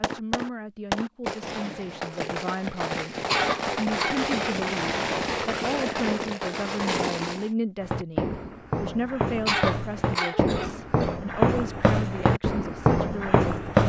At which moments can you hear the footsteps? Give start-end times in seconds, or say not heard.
7.8-13.8.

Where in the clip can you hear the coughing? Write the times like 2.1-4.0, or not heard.
3.2-4.5, 9.4-11.2.